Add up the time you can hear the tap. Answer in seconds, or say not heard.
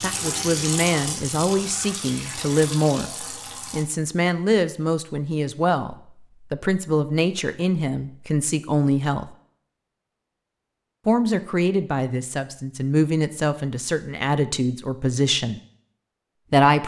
4 s.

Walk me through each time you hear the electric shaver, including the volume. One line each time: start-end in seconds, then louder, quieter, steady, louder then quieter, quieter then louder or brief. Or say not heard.
not heard.